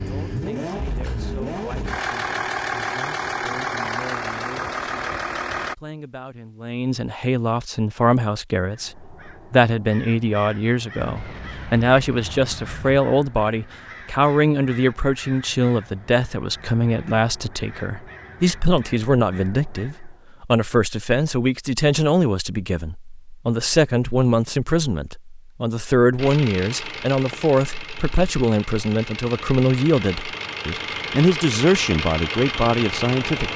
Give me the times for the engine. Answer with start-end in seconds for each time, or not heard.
0.0-5.8, 26.1-33.5.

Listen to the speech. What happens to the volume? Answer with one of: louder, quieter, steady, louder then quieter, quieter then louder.
louder.